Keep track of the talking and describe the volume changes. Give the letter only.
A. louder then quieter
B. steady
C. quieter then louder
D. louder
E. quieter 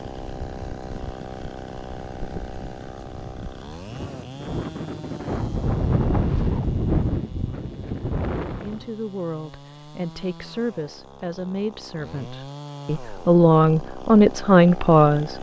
D.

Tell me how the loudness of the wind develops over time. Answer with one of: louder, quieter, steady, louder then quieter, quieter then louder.
louder.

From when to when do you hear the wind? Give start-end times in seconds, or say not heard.
0.0-8.9.